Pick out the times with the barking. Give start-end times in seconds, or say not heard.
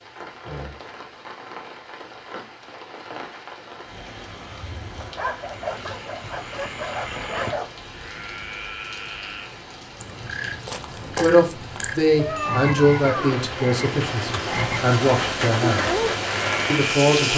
5.0-7.8.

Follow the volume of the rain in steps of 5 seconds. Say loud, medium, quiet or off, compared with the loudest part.
quiet, quiet, medium, loud.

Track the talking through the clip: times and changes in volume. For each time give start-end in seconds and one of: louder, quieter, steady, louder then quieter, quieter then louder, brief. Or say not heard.
11.2-15.9 quieter then louder
16.7-17.3 brief.